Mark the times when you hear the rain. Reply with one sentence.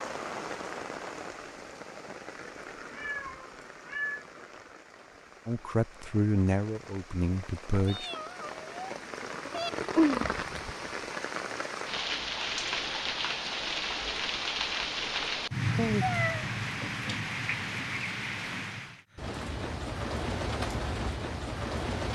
The rain can be heard from 0.0 to 22.1 s.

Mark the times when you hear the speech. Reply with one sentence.
You can hear the speech from 5.5 to 8.1 s.